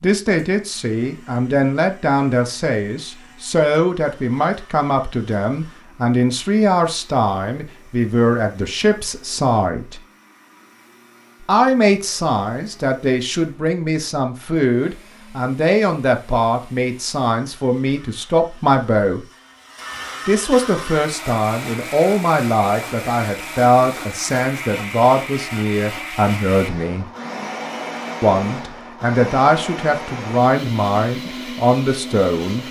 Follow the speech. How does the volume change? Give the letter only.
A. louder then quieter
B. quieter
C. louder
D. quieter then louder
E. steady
E.